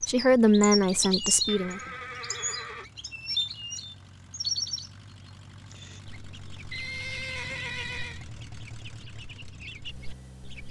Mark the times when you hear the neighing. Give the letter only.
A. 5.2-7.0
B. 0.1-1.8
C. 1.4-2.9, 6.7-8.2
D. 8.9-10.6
C.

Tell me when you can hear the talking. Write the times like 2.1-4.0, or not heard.
0.1-1.8.